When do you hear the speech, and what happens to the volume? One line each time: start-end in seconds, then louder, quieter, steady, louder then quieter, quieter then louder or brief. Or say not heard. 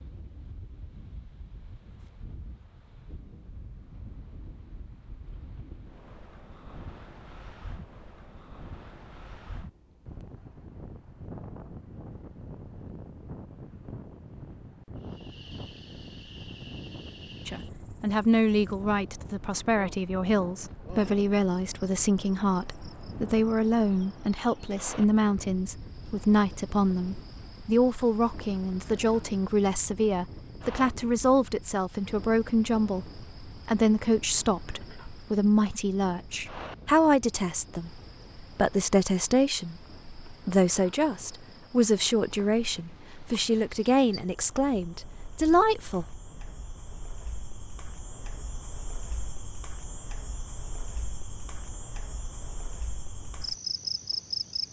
17.4-46.1 steady.